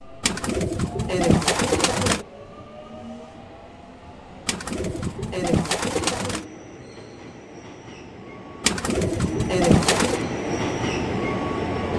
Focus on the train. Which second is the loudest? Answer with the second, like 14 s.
11 s.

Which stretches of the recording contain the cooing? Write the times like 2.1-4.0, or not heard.
0.2-2.2, 4.5-6.5, 8.6-10.2.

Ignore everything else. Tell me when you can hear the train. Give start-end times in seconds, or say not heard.
0.0-11.9.